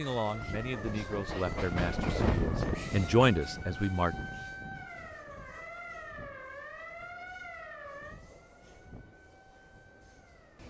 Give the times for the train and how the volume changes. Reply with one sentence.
You can hear the train from 0.0 to 10.6 s, getting quieter.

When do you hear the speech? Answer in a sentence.
The speech can be heard from 0.0 to 4.2 s.